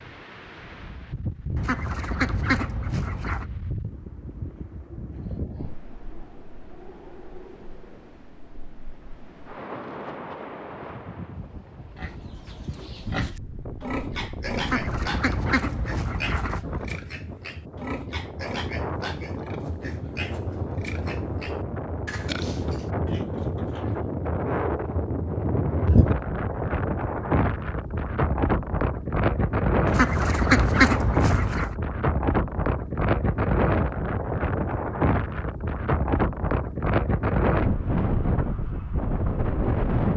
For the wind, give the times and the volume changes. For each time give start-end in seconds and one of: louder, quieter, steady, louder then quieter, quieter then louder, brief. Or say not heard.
0.0-40.1 louder.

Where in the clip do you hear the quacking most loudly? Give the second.
31 s.